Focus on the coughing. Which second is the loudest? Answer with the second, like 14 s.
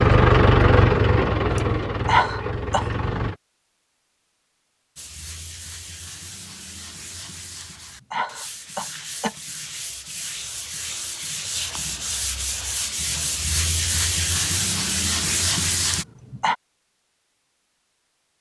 2 s.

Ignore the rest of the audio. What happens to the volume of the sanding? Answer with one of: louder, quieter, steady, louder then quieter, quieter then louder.
louder.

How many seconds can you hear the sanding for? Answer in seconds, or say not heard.
11 s.